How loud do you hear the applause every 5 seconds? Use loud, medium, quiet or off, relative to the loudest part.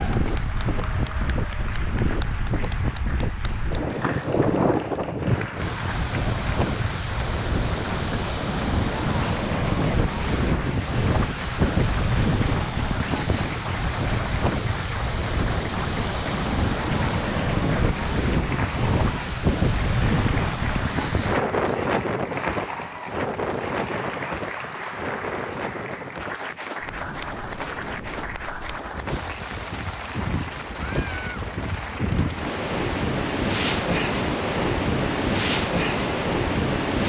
loud, loud, loud, loud, loud, loud, loud, off.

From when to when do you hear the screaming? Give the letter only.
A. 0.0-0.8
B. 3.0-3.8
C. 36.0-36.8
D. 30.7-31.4
D.